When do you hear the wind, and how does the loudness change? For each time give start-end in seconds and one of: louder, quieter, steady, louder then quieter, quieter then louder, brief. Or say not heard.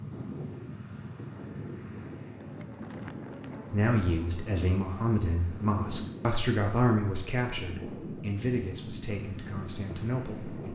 0.0-10.7 steady.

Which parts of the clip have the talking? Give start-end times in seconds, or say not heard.
3.7-10.7.